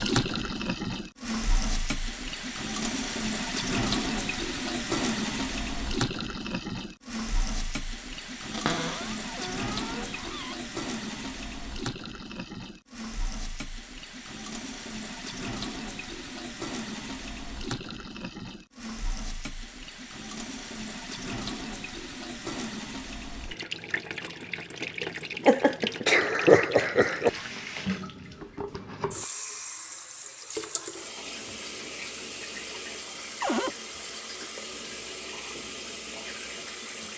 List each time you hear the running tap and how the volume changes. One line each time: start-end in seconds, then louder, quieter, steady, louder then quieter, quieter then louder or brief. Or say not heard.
0.0-37.1 quieter.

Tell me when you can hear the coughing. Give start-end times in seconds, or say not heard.
25.4-27.3.